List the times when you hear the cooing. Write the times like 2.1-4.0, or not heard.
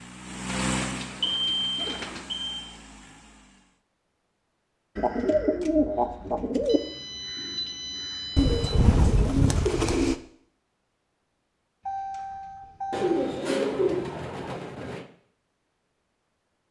0.6-2.2, 5.0-6.8, 8.3-10.2, 12.9-15.1.